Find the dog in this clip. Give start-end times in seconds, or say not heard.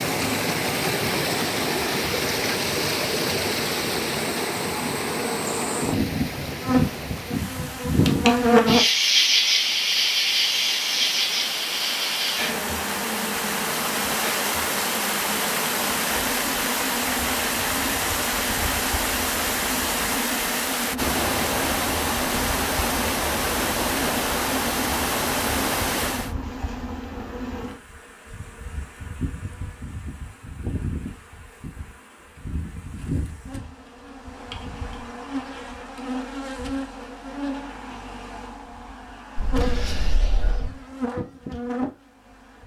not heard.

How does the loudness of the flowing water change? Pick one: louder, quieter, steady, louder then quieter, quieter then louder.
quieter then louder.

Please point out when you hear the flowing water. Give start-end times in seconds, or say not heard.
0.0-26.4.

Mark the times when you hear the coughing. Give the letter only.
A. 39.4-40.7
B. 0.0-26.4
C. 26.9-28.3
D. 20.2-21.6
A.